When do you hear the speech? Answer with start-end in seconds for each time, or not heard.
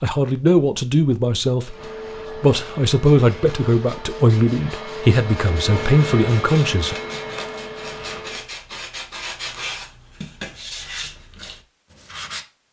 0.0-1.8, 2.4-7.0.